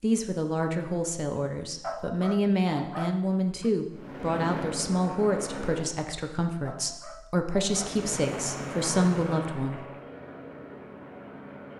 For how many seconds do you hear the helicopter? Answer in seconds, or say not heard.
6 s.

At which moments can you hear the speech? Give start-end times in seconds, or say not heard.
0.0-9.8.